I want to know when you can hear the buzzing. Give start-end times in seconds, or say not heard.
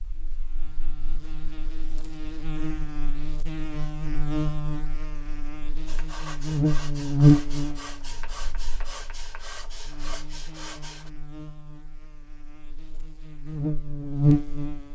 0.0-14.9.